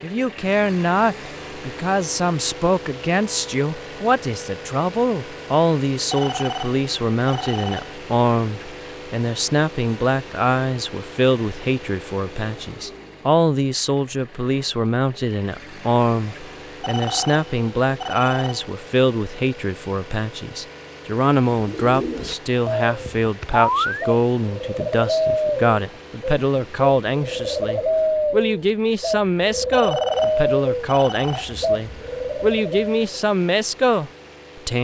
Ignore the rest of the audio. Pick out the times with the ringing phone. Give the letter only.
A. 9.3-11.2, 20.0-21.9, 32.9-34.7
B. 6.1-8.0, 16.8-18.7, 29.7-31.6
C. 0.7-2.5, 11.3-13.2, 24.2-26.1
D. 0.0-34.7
B.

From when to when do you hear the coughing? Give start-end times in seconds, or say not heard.
not heard.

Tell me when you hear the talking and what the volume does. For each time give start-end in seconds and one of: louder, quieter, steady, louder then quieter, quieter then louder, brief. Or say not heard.
0.0-34.7 steady.